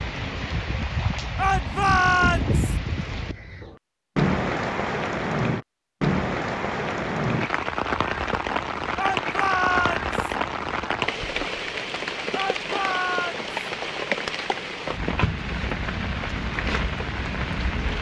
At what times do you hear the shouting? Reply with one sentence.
You can hear the shouting from 1.4 to 2.8 s, from 8.9 to 10.2 s and from 12.3 to 13.4 s.